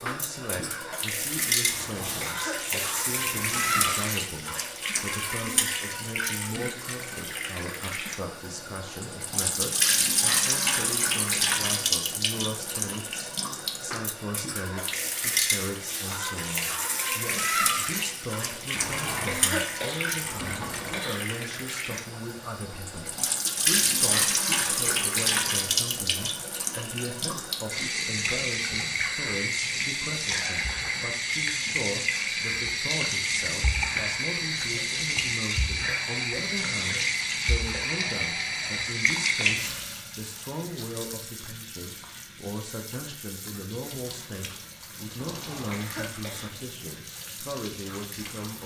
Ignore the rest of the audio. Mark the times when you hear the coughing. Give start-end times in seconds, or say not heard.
1.6-4.1, 18.8-21.4, 45.1-46.6.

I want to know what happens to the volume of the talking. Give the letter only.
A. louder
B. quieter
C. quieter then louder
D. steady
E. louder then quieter
D.